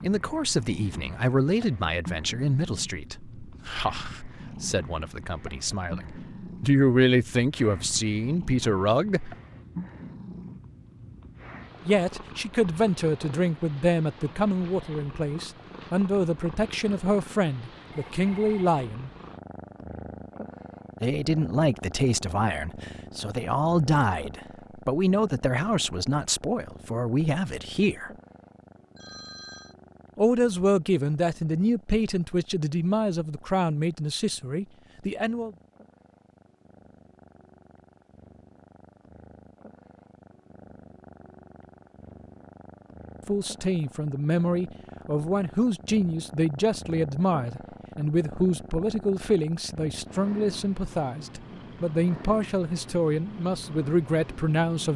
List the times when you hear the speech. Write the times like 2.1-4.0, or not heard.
0.0-9.3, 11.8-19.1, 21.0-28.1, 30.1-35.5, 43.2-54.9.